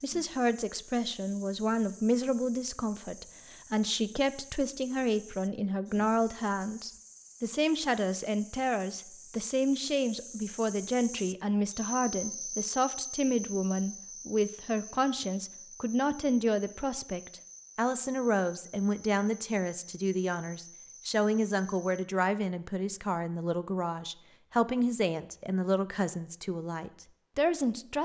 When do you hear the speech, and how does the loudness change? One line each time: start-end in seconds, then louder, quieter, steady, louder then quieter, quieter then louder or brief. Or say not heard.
0.0-28.0 steady.